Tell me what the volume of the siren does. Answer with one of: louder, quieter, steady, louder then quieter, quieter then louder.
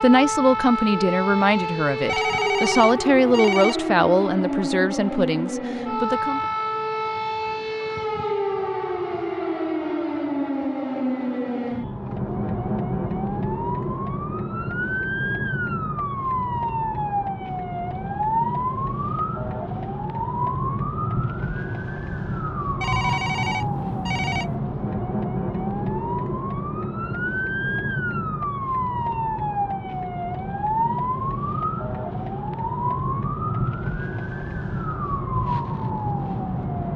steady.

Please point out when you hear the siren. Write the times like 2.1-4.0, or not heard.
0.0-36.9.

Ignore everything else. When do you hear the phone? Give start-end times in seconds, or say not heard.
2.0-3.8, 22.8-24.5.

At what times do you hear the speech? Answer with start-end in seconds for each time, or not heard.
0.0-6.4.